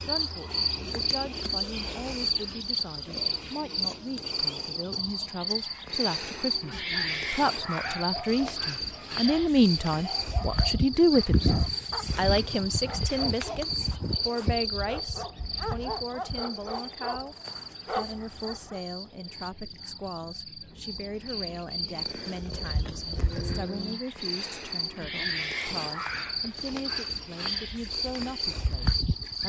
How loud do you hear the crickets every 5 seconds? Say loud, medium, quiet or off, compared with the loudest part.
loud, loud, loud, medium, medium, loud.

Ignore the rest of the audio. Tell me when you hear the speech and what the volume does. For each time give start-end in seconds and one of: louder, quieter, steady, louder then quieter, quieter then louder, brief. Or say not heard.
0.0-29.4 louder then quieter.